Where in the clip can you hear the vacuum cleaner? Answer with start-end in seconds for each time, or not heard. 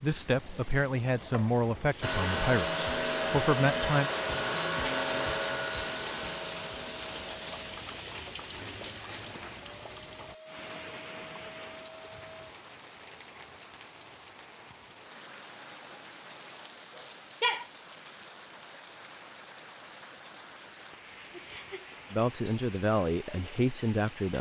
2.0-12.4.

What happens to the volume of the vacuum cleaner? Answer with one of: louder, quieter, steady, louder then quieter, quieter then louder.
quieter.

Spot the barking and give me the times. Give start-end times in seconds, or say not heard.
16.9-17.6.